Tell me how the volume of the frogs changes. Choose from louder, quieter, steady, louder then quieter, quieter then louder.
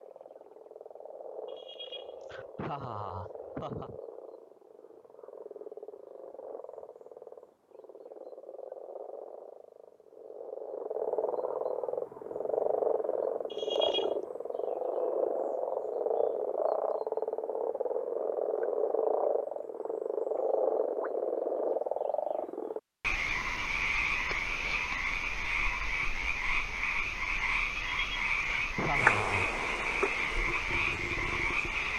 louder.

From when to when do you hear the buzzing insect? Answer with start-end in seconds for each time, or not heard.
28.9-31.9.